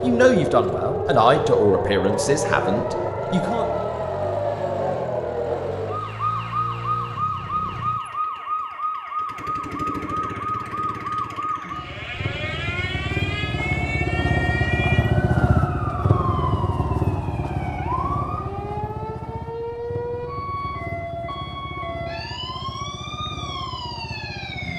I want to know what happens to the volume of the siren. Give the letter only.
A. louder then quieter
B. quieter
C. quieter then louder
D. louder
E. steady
B.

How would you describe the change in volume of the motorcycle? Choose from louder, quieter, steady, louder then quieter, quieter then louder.
louder then quieter.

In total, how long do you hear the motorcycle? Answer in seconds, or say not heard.
25 s.